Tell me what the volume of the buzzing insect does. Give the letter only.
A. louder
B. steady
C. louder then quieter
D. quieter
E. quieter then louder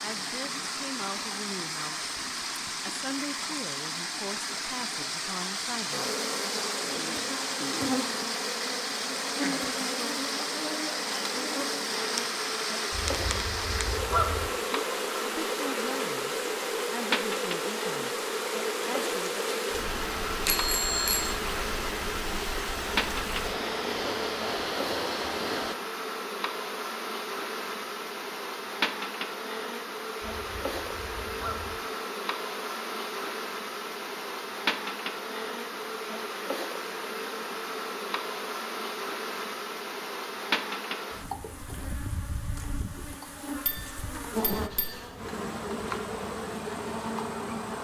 B.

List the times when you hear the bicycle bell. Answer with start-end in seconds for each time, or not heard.
20.4-21.4, 43.6-45.0.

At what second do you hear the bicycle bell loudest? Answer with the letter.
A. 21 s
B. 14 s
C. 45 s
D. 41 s
A.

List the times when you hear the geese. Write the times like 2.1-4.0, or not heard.
12.9-14.5, 30.2-31.8.